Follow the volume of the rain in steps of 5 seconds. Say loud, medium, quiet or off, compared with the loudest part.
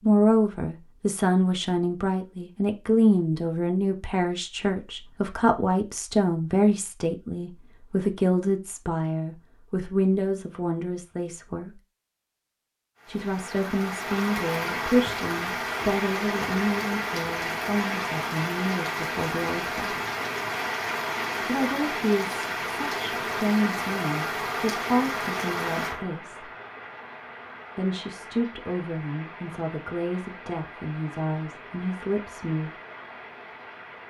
off, off, loud, loud, loud, medium, quiet.